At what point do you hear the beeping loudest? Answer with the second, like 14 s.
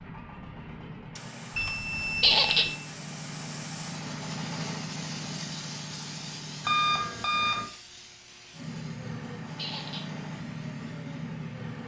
7 s.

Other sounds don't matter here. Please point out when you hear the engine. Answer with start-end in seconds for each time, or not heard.
0.0-7.1, 8.5-11.8.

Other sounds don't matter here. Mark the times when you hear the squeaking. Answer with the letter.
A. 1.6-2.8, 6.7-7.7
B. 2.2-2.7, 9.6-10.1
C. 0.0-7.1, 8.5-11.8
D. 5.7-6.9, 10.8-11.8
B.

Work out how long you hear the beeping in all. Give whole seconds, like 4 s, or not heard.
2 s.